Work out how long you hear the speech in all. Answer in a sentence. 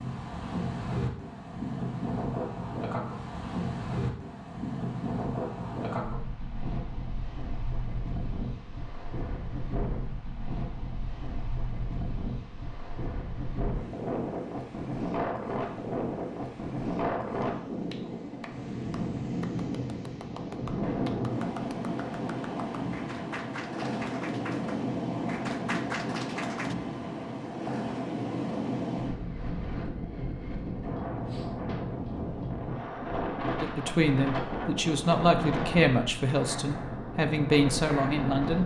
You can hear the speech for 5 seconds altogether.